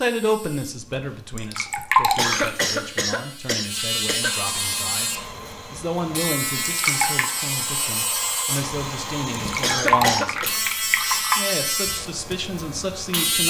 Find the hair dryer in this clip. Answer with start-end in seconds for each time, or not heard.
4.2-9.8.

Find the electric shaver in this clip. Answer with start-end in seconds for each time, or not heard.
0.0-13.4.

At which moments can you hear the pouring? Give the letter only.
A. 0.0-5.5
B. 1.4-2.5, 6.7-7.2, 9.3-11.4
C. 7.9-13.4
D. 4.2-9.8
B.